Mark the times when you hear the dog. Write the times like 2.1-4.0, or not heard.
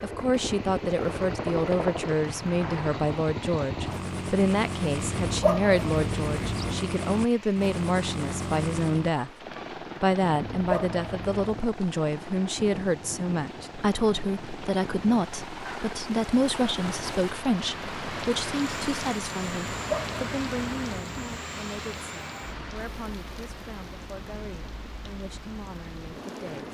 5.0-6.8, 10.4-11.8, 19.6-21.4.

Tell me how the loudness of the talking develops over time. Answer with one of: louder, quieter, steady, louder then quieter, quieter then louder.
quieter.